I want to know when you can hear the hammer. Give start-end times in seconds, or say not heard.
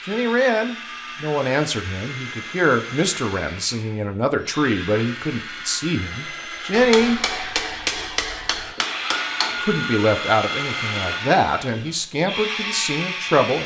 6.7-9.6.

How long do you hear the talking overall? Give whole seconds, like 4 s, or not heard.
11 s.